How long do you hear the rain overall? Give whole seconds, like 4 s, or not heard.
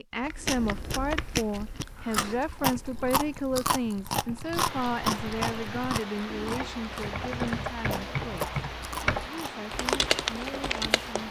7 s.